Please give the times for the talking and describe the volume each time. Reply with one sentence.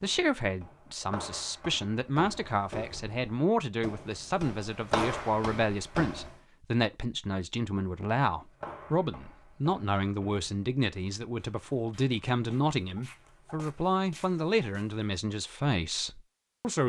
The talking can be heard from 0.0 to 16.8 s, at a steady volume.